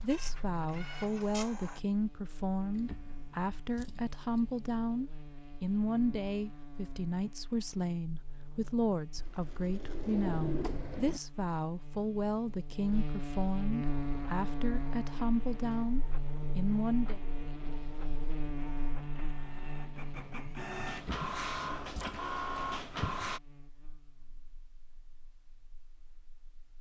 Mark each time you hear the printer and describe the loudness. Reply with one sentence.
You can hear the printer briefly from 0.0 to 1.8 s; and from 13.8 to 23.4 s, getting louder.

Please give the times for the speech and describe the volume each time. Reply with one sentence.
The speech can be heard from 0.0 to 17.2 s, at a steady volume.